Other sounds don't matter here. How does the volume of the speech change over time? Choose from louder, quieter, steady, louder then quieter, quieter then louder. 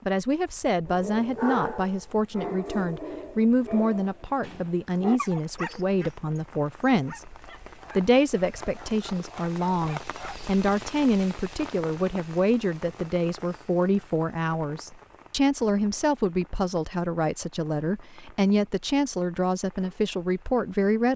steady.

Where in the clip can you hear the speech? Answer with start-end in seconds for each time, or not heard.
0.1-7.2, 8.0-21.1.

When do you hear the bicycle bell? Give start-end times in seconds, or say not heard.
not heard.